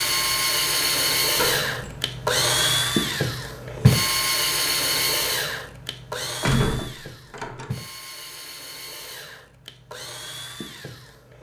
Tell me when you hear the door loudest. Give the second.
7 s.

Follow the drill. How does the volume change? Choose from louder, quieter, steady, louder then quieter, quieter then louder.
quieter.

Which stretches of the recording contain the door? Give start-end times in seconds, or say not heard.
1.4-2.0, 6.4-7.7.